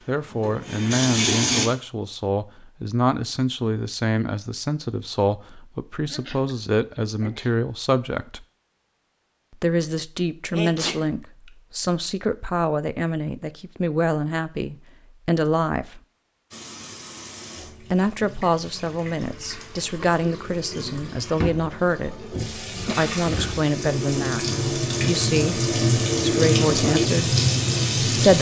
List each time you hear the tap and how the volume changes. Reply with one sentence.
The tap can be heard briefly from 0.0 to 1.7 s; and from 16.5 to 28.3 s, getting louder.